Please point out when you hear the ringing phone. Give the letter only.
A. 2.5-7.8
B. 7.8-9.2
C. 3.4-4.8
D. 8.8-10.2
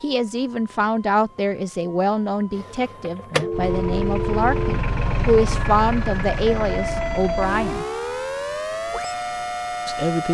C.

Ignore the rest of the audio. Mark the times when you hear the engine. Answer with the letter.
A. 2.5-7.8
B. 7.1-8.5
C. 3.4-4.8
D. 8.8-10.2
A.